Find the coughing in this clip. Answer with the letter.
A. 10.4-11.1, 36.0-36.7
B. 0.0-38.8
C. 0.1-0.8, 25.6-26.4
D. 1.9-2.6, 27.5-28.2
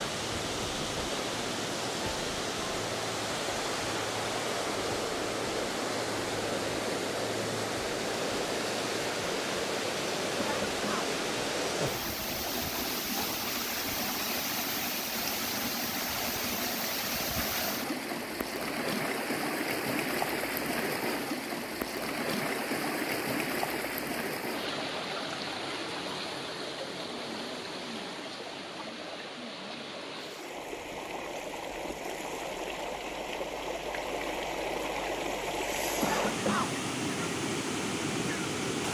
A.